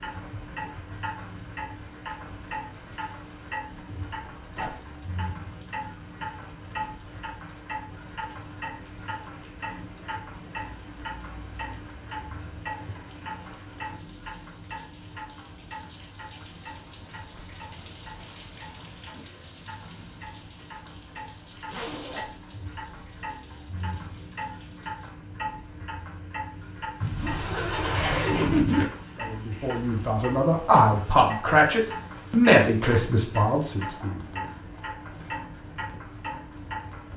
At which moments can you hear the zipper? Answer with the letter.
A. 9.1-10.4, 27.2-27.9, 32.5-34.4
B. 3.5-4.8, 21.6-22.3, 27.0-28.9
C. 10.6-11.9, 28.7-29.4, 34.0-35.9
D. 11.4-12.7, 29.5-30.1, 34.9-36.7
B.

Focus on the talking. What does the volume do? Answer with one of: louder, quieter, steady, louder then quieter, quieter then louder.
louder then quieter.